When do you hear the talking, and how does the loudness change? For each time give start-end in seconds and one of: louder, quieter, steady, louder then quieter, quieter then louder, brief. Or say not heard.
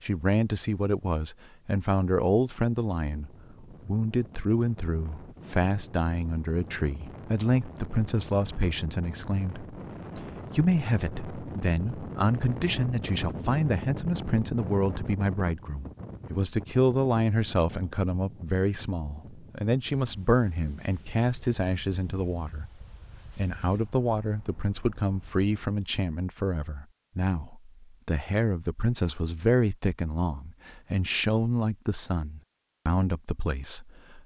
0.0-34.2 steady.